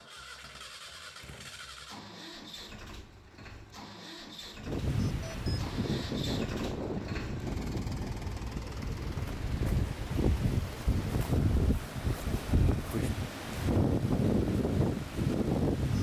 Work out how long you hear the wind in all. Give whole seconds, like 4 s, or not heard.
11 s.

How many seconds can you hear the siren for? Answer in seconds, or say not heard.
not heard.